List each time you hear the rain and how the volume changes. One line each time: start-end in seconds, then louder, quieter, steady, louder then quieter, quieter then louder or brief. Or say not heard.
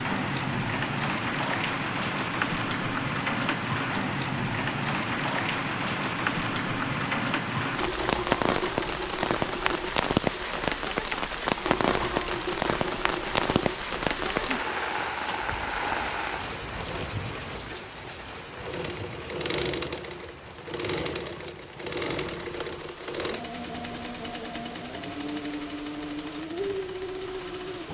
0.0-27.8 quieter.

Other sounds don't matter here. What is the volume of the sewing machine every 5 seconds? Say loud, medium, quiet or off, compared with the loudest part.
off, loud, loud, loud, loud, loud.